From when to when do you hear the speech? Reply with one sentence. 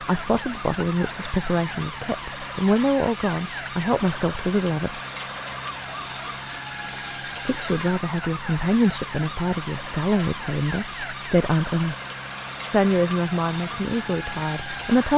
The speech can be heard from 0.0 to 5.0 s, from 7.5 to 11.9 s and from 12.7 to 15.1 s.